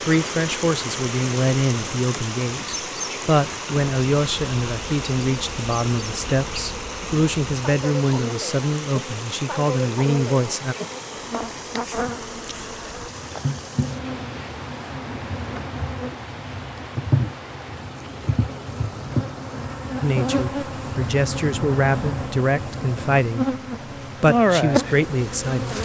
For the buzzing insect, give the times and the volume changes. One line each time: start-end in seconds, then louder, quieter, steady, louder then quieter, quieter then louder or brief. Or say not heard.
0.1-25.7 louder.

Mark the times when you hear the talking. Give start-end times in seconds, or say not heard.
0.0-10.8, 20.0-23.6, 24.2-25.7.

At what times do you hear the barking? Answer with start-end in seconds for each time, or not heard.
not heard.